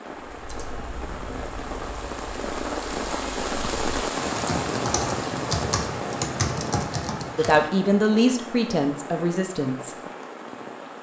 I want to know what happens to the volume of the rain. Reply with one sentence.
The volume of the rain goes up, then down.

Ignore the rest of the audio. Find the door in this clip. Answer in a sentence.
You can't hear the door here.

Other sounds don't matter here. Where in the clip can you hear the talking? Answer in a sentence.
The talking can be heard from 7.3 to 9.9 s.